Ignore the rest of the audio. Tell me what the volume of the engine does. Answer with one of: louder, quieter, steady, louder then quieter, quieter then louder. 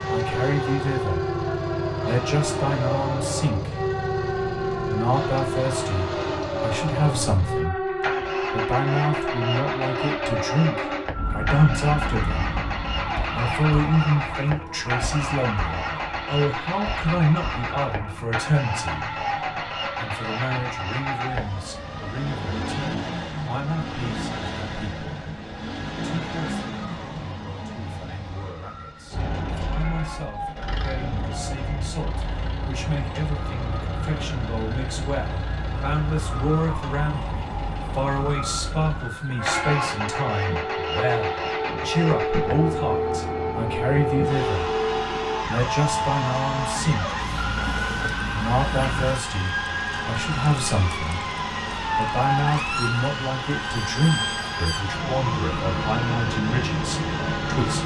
steady.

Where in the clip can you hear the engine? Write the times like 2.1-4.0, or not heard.
0.0-57.8.